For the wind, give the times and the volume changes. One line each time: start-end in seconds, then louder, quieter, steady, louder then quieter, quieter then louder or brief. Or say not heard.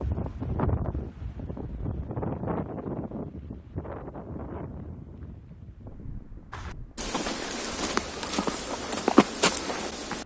0.0-10.2 quieter.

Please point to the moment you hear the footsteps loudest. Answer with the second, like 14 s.
9 s.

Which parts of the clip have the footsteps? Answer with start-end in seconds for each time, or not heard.
6.5-10.2.